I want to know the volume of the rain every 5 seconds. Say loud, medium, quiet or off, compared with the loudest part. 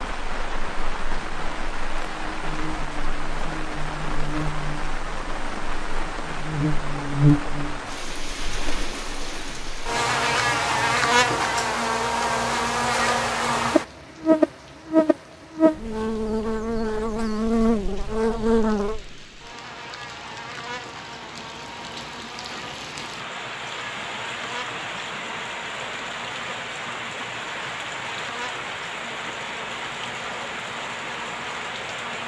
loud, loud, medium, quiet, loud, loud, loud.